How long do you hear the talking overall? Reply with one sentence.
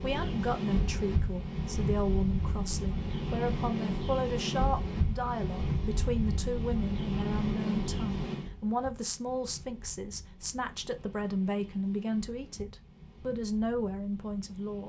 The talking can be heard for 15 seconds in total.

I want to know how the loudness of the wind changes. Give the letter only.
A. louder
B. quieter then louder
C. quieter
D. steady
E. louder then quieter
C.